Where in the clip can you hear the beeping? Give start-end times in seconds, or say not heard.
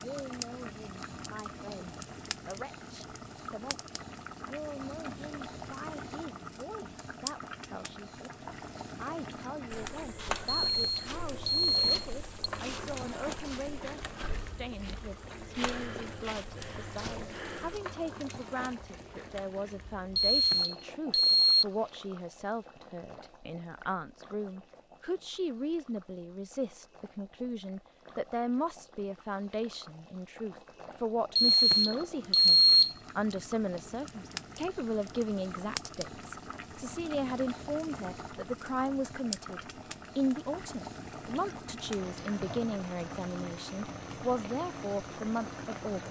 10.4-12.5, 20.1-21.6, 31.4-33.0.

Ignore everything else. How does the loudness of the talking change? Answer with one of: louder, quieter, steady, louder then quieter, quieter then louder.
louder.